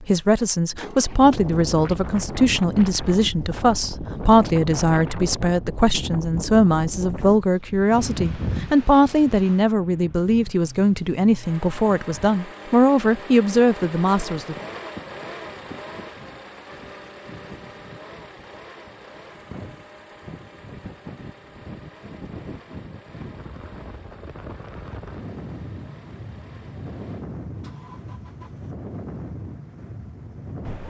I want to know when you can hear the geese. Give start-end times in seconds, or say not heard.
not heard.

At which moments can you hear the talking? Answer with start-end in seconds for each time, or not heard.
0.0-14.6.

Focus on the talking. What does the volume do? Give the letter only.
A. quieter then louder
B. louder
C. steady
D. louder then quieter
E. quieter
C.